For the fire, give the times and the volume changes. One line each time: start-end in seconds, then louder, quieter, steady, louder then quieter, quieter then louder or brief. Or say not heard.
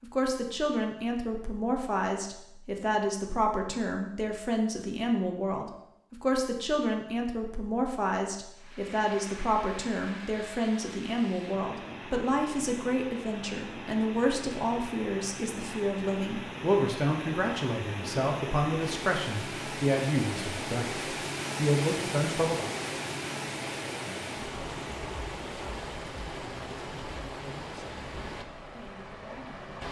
not heard.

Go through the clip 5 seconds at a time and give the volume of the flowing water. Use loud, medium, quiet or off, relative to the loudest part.
off, medium, medium, loud, loud, medium.